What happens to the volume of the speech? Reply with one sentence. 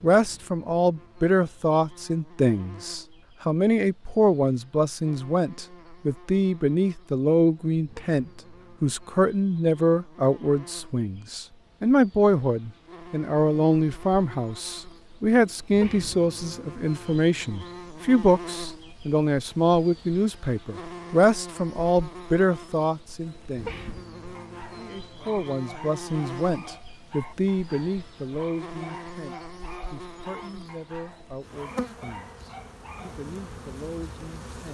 The volume of the speech goes down.